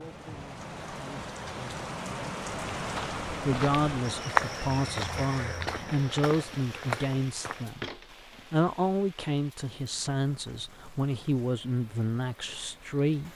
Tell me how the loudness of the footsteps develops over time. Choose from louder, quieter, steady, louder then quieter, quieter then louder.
louder then quieter.